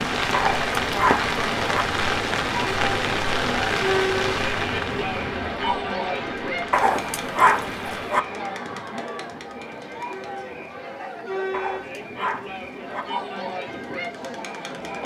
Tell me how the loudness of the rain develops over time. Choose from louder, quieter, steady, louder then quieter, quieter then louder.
quieter.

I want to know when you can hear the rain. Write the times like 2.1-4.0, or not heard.
0.0-8.2.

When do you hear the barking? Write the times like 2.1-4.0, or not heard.
0.3-1.9, 6.7-8.2, 11.5-13.1.